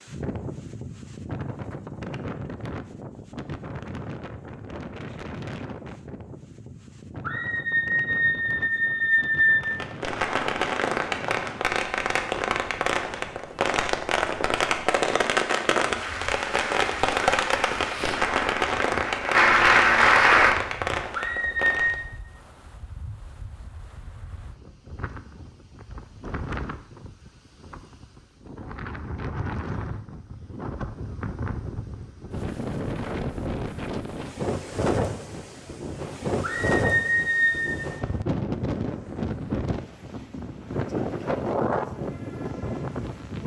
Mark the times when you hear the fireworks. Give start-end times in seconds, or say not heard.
9.6-21.9.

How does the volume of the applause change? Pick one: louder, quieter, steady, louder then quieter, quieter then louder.
louder.